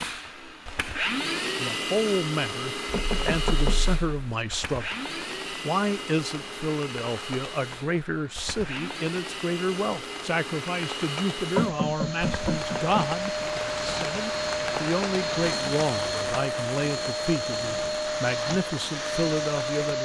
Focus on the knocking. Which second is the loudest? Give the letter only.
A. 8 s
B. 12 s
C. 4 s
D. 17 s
B.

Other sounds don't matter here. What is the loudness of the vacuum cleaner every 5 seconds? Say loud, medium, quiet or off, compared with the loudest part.
loud, medium, loud, loud.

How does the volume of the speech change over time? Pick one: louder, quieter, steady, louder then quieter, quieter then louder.
steady.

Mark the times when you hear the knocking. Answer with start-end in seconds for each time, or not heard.
2.9-4.3, 11.6-13.4.